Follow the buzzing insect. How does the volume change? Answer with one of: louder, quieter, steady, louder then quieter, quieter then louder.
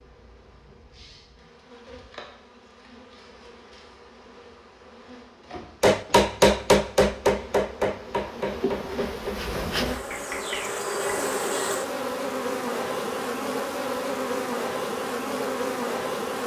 louder.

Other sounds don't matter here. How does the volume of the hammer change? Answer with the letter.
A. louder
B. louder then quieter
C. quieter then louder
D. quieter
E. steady
D.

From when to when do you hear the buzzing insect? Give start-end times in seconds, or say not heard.
0.0-16.4.